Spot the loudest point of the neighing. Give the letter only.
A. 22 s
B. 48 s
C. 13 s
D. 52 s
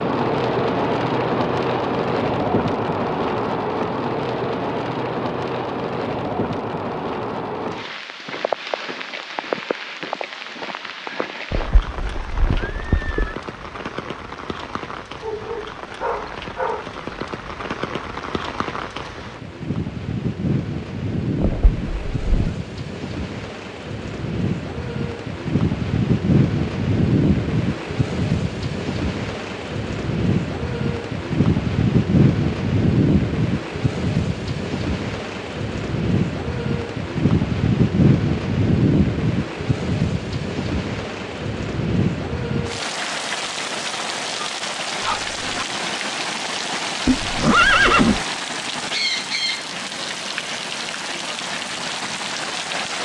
B.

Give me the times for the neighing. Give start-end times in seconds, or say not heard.
11.5-13.3, 21.4-22.5, 47.0-48.2.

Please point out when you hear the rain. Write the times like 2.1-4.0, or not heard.
0.0-52.9.